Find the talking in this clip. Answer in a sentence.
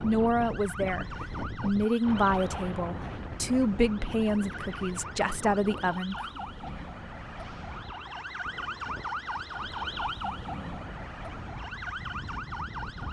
You can hear the talking from 0.0 to 6.4 s.